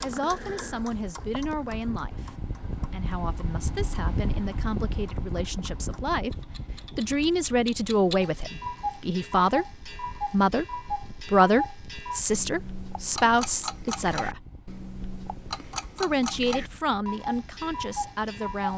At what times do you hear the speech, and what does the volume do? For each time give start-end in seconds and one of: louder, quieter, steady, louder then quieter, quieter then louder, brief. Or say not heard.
0.0-14.4 louder
15.9-18.7 brief.